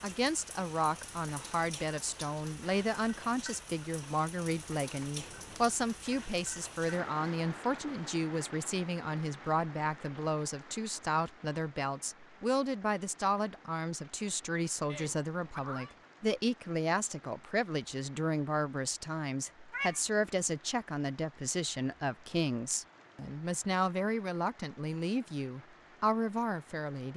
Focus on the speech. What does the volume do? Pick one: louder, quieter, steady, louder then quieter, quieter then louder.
steady.